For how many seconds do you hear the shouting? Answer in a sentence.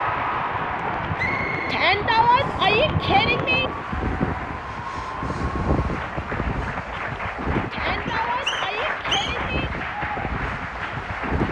The shouting can be heard for 4 seconds in total.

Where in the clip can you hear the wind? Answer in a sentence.
The wind can be heard from 0.0 to 11.4 s.